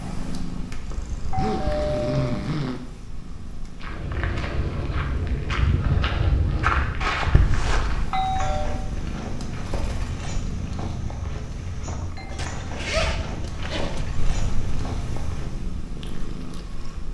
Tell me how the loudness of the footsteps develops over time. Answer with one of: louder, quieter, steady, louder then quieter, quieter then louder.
quieter.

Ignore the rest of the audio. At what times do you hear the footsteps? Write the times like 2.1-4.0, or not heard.
3.8-15.8.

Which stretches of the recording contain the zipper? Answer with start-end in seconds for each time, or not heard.
1.1-2.8, 7.0-8.3, 12.3-14.1.